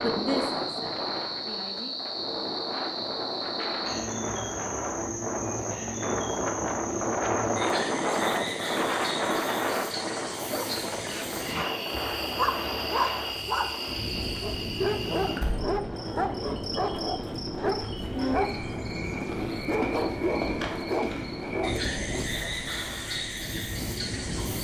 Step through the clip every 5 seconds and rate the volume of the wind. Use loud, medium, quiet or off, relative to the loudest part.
medium, loud, medium, medium, medium.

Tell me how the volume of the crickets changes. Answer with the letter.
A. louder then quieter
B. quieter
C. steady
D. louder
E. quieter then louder
C.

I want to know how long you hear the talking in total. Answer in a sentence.
The talking can be heard for 2 seconds in total.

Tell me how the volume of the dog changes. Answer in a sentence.
The loudness of the dog stays about the same.